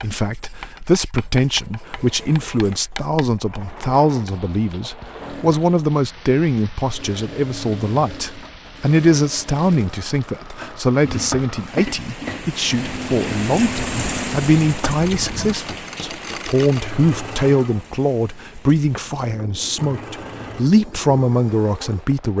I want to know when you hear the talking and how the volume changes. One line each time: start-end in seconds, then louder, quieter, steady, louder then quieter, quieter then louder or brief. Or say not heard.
0.0-22.3 steady.